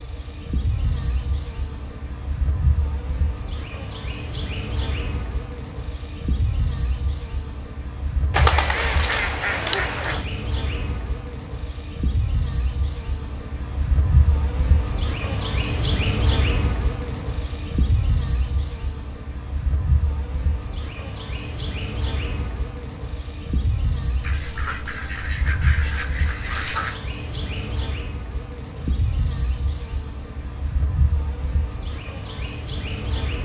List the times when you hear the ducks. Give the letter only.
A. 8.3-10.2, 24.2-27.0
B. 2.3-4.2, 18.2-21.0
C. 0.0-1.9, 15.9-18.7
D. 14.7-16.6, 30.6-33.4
A.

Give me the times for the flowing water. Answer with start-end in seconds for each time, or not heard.
not heard.